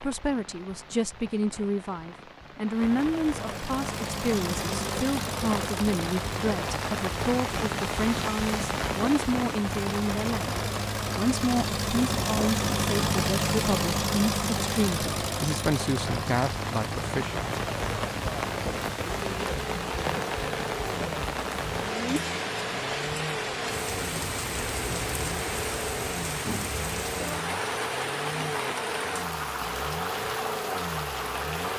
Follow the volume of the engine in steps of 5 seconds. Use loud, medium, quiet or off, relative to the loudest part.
medium, medium, loud, medium, medium, medium, medium.